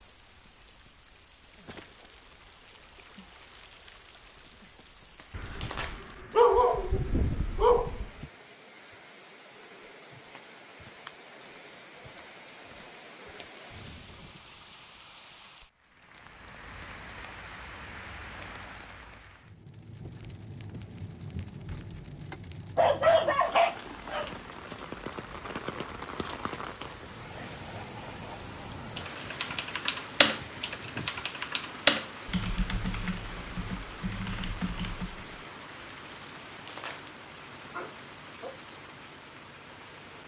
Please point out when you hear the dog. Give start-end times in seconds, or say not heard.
5.3-8.1, 22.8-24.9, 37.7-38.6.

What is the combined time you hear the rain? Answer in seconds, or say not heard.
40 s.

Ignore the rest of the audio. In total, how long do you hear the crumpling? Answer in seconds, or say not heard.
2 s.